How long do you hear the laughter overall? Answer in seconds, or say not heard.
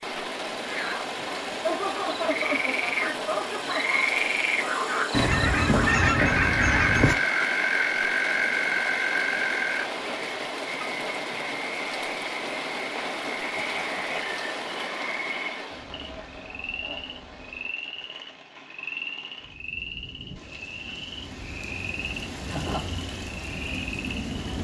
4 s.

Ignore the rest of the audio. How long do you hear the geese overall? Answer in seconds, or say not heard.
2 s.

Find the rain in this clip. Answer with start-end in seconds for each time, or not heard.
0.0-24.5.